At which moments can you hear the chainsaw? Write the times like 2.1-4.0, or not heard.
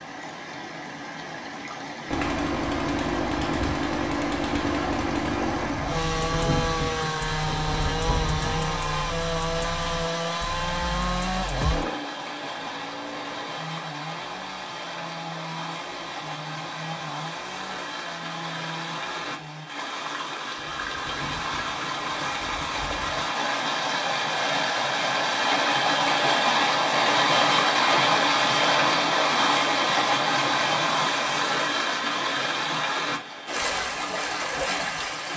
2.0-19.7.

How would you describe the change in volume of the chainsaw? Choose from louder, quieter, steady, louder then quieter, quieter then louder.
quieter.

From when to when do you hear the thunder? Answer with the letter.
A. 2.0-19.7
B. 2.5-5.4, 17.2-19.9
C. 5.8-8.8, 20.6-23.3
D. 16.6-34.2
C.